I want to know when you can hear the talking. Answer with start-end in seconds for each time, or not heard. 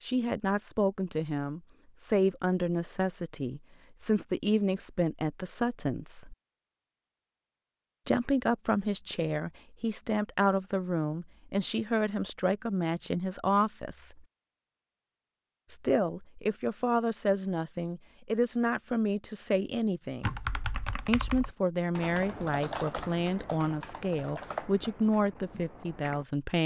0.0-6.3, 8.1-14.2, 15.7-20.4, 21.1-26.6.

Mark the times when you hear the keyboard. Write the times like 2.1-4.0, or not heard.
20.2-26.2.